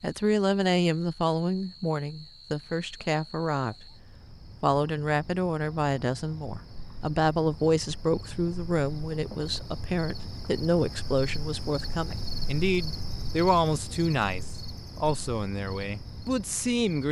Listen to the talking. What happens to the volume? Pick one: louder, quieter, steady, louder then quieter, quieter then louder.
steady.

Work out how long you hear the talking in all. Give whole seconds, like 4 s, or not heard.
16 s.